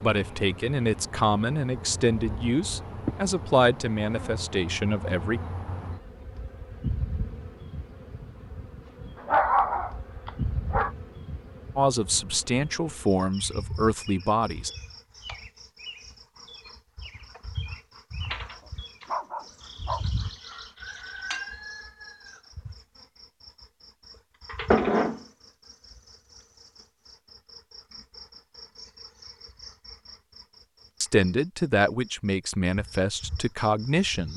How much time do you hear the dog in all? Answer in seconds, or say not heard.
3 s.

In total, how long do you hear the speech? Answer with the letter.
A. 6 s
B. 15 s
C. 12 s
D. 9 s
C.